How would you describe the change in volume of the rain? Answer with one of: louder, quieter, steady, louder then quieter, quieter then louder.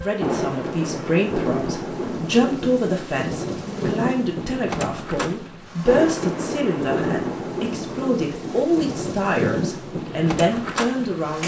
steady.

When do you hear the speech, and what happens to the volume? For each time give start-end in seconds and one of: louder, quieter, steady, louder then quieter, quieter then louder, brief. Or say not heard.
0.0-11.4 steady.